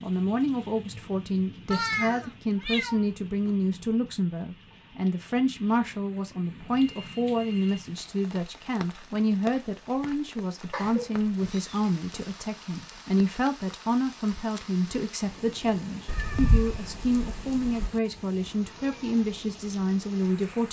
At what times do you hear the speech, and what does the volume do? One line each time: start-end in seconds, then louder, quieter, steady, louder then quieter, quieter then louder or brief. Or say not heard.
0.0-20.6 steady.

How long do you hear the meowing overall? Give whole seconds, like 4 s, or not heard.
5 s.